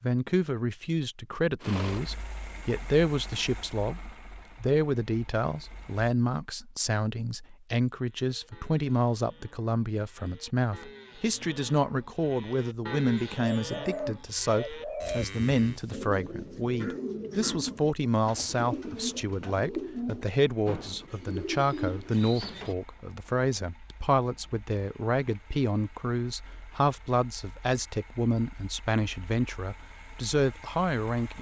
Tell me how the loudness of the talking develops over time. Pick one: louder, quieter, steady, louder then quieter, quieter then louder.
steady.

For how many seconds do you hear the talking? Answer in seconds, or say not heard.
31 s.